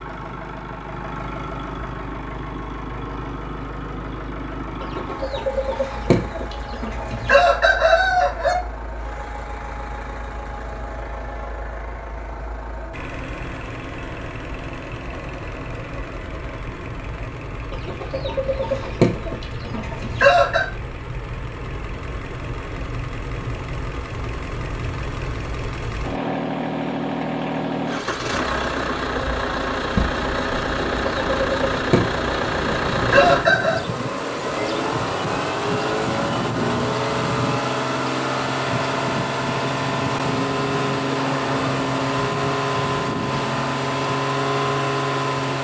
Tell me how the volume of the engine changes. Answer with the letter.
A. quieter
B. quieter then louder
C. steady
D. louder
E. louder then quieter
D.